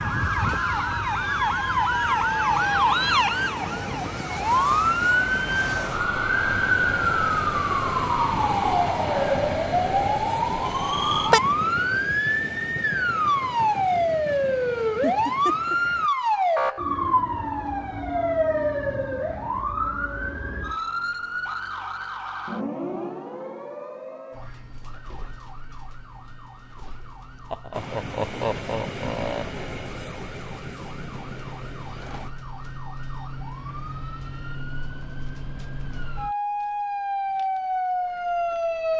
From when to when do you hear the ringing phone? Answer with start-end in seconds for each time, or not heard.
not heard.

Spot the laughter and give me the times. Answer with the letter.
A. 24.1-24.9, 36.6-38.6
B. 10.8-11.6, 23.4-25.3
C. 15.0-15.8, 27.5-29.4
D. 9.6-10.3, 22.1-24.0
C.